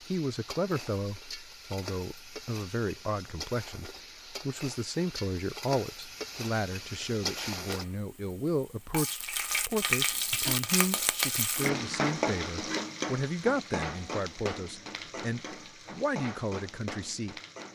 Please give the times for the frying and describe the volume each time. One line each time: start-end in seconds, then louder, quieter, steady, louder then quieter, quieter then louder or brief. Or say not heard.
0.0-17.7 louder then quieter.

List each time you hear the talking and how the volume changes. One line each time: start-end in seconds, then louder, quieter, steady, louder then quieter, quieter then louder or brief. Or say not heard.
0.1-17.7 steady.